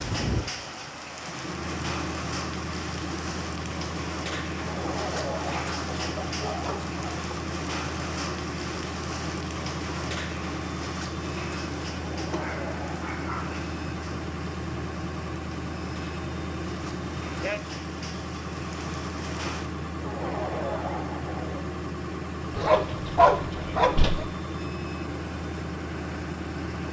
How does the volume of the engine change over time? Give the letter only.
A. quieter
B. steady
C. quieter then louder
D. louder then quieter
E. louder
B.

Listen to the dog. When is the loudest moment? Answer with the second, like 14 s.
23 s.